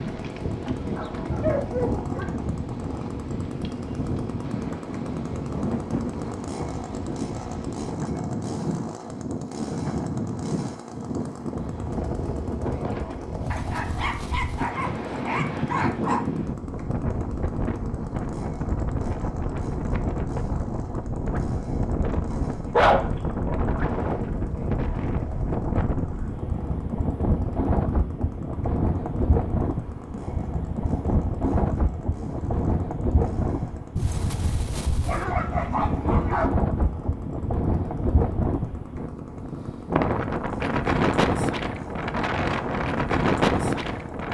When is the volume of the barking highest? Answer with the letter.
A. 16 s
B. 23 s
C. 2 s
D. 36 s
B.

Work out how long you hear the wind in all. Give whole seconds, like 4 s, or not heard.
44 s.